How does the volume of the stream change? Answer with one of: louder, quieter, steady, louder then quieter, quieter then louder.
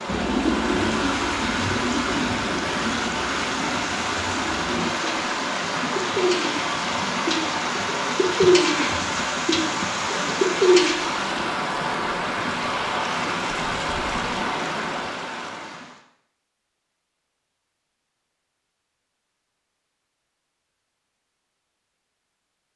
steady.